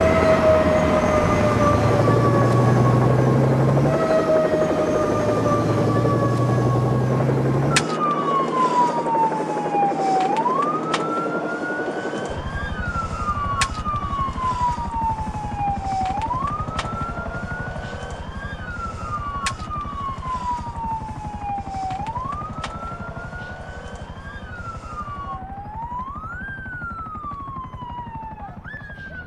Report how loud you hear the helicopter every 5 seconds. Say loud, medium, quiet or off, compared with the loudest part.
loud, loud, medium, quiet, quiet, quiet.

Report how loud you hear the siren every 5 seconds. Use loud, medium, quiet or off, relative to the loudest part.
loud, loud, medium, medium, quiet, quiet.